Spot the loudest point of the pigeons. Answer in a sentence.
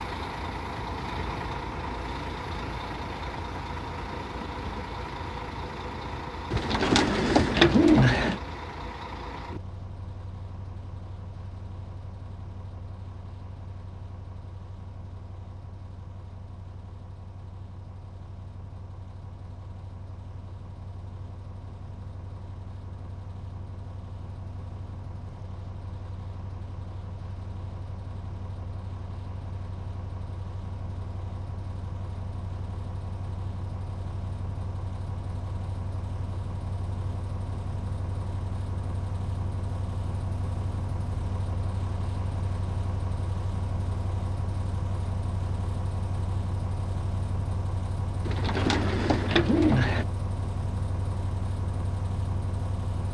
The volume of the pigeons peaks at 8 seconds.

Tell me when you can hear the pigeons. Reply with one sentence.
You can hear the pigeons from 6.5 to 8.4 s and from 48.2 to 50.0 s.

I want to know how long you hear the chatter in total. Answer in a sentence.
The chatter can't be heard in this clip.